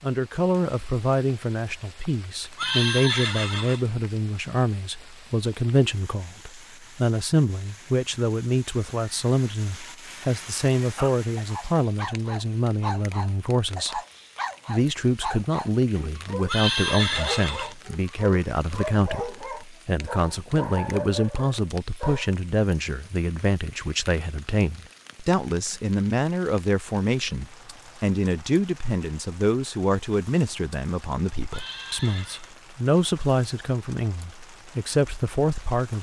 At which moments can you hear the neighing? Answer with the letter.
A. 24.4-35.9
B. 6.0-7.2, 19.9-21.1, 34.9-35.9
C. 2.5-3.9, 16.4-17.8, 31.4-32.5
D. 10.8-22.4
C.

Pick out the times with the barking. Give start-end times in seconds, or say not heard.
10.8-22.4.